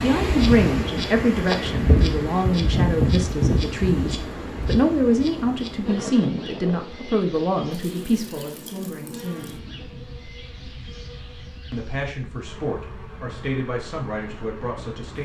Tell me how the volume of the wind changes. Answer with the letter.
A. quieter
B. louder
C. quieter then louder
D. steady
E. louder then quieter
A.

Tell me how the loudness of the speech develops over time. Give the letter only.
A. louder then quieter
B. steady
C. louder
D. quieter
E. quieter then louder
D.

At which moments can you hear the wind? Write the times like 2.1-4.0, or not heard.
0.0-15.2.